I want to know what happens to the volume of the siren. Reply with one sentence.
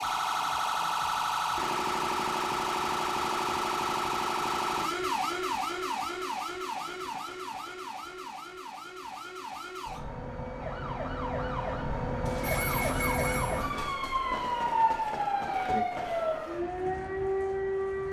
The loudness of the siren goes down, then up.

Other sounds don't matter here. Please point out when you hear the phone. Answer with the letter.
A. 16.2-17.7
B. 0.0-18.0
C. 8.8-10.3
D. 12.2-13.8
D.